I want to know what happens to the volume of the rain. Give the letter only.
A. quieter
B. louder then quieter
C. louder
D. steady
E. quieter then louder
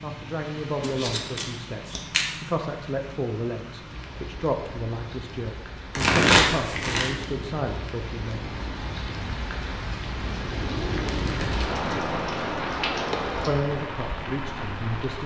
C.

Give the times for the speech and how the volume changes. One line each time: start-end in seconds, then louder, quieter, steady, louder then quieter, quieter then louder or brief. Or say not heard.
0.0-8.6 steady
13.4-15.2 brief.